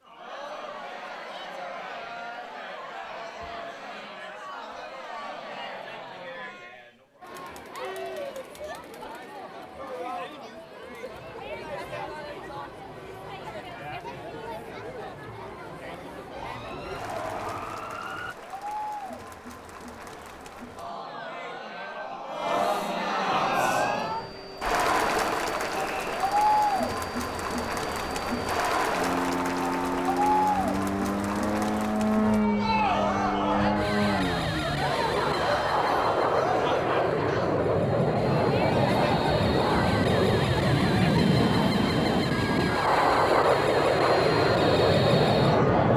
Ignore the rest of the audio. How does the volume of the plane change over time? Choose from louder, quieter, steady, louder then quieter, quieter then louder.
louder.